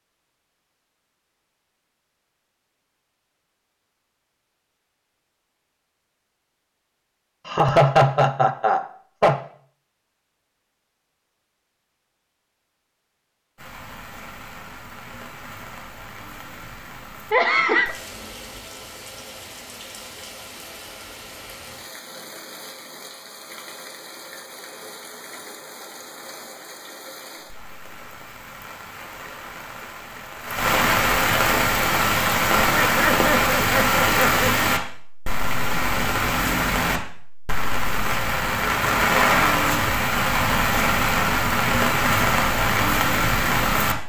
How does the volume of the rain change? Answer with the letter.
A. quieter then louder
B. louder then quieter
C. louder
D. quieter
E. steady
C.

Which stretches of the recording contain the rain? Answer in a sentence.
You can hear the rain from 13.6 to 44.0 s.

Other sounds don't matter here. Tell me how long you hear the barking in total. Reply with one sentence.
The barking can't be heard in this clip.